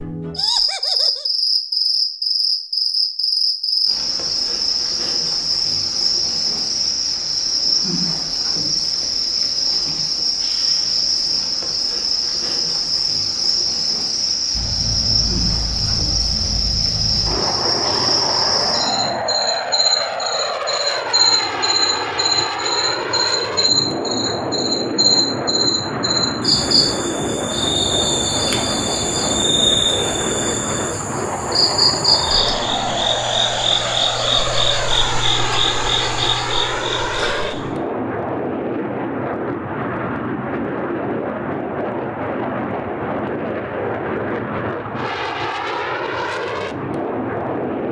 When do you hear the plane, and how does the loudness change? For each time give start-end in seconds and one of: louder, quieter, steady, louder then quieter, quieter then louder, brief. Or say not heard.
14.5-47.8 steady.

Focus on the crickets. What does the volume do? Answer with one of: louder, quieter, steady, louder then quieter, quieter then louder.
steady.